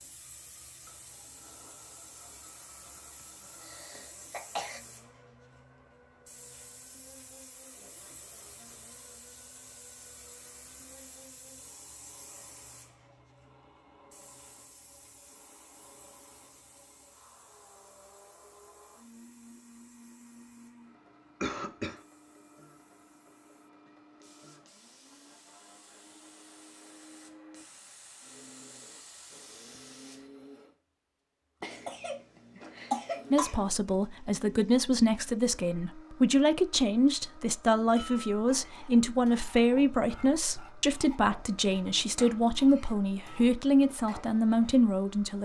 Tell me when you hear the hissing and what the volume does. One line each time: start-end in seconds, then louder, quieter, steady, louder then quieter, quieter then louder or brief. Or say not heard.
0.0-30.3 quieter then louder.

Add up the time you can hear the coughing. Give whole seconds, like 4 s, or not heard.
4 s.